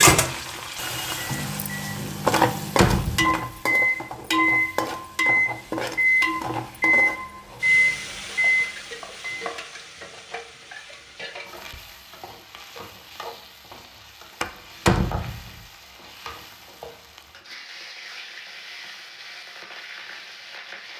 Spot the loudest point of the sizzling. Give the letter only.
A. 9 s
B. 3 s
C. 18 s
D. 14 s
B.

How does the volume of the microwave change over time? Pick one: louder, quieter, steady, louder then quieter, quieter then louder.
louder.